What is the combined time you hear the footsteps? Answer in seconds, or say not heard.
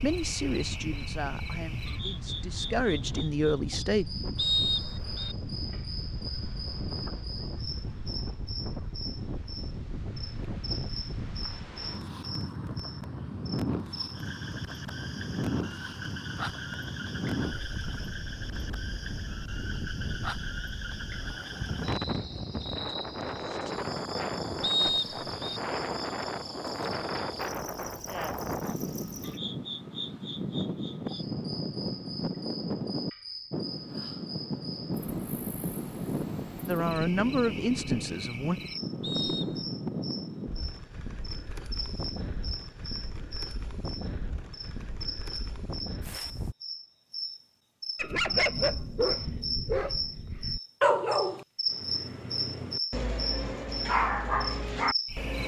not heard.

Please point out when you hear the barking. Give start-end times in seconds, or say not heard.
48.0-55.4.